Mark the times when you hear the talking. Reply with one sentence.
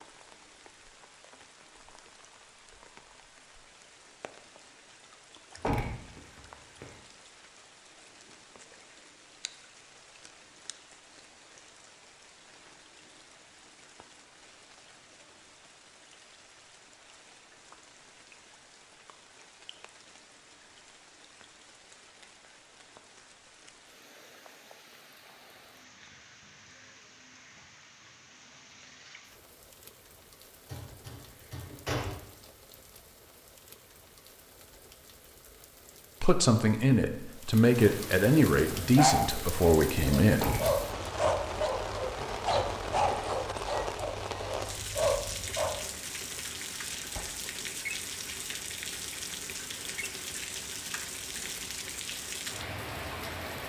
You can hear the talking from 36.2 to 40.5 s.